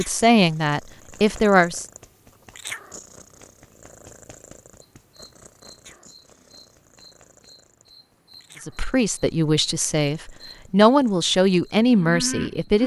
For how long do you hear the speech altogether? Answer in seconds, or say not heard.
6 s.